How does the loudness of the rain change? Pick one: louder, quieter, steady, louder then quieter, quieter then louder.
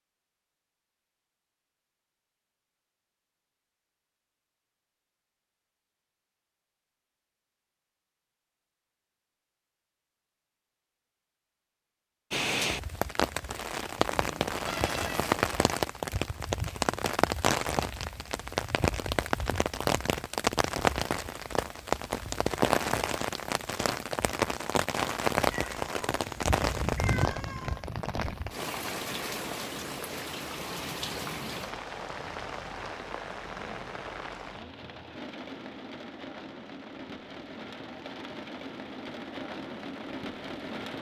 quieter.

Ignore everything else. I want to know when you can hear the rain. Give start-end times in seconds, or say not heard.
12.3-40.9.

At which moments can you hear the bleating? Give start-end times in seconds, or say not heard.
not heard.